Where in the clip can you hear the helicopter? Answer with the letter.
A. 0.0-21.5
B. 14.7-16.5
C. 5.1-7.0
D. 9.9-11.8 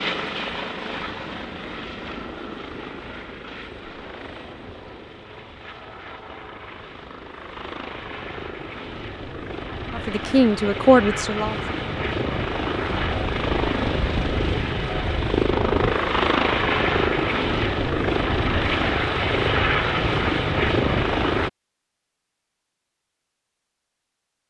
A.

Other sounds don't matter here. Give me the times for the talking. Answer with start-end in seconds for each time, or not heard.
9.9-11.8.